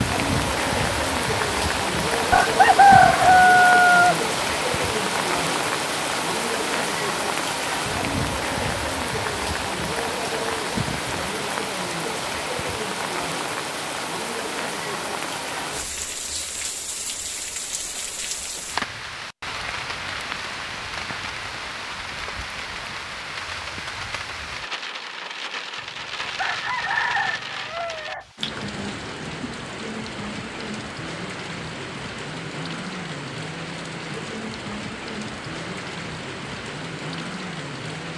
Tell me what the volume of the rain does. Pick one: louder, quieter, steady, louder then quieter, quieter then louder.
quieter.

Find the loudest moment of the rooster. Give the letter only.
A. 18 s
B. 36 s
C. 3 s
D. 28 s
C.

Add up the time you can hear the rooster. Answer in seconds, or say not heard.
4 s.